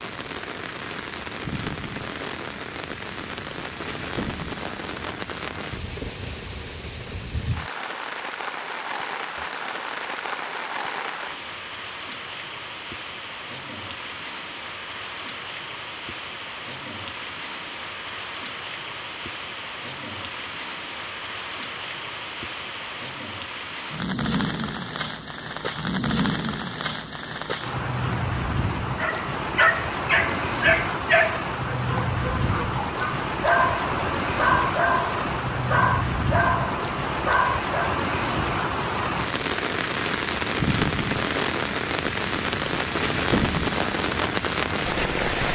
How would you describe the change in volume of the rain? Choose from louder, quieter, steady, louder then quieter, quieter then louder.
louder.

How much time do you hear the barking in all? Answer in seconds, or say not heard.
9 s.